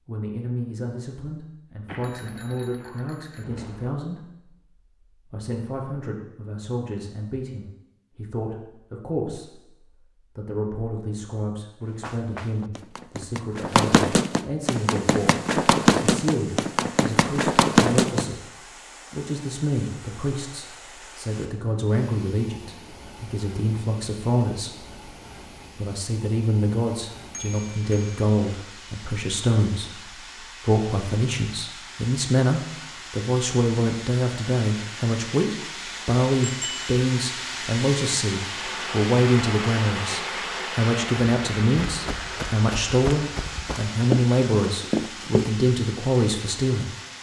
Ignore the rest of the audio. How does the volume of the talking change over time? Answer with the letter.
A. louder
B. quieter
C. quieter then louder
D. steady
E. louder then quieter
A.